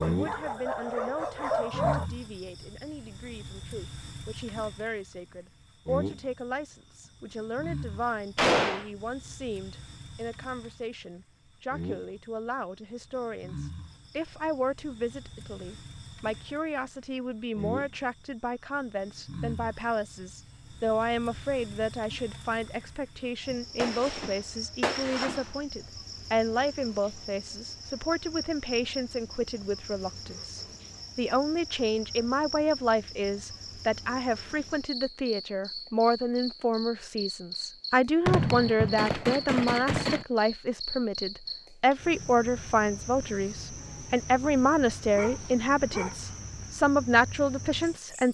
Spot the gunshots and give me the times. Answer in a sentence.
The gunshots can be heard from 8.3 to 8.8 s, from 23.8 to 25.4 s and from 38.2 to 40.2 s.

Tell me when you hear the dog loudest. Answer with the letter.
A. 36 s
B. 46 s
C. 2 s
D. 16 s
C.